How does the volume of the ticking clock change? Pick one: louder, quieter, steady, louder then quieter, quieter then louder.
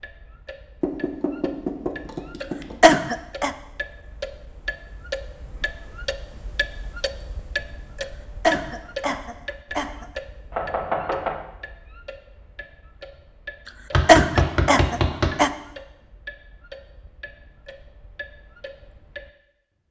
louder then quieter.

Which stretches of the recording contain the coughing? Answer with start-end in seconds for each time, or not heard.
2.8-3.5, 8.4-10.1, 14.1-15.5.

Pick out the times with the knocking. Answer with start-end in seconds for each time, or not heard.
0.8-2.8, 10.5-11.4, 13.9-15.3.